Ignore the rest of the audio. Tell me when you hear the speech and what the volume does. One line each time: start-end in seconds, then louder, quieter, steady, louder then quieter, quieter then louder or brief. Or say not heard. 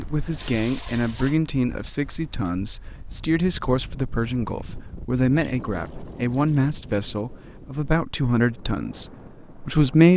0.0-10.1 steady.